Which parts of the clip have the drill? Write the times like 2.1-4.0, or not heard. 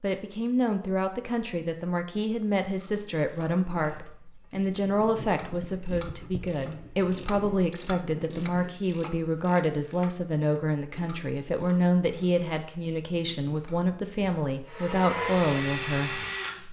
14.7-16.6.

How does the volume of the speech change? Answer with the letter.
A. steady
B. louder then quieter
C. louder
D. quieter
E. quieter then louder
A.